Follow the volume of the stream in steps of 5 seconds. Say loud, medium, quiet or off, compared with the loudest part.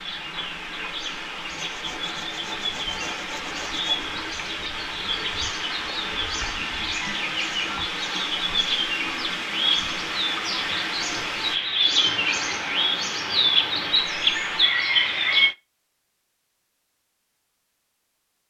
loud, loud, loud, off.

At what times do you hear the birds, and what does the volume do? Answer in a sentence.
The birds can be heard from 0.0 to 15.6 s, getting louder.